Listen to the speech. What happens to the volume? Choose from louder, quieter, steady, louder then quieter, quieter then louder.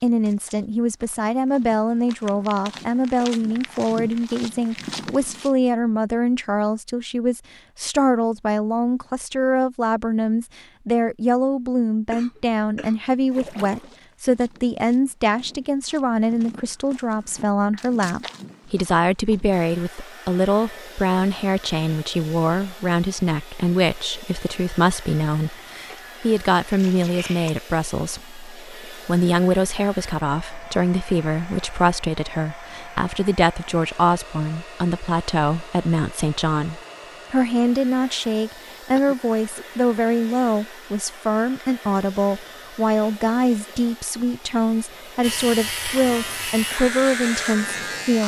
steady.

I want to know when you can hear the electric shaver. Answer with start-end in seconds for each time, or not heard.
45.2-48.2.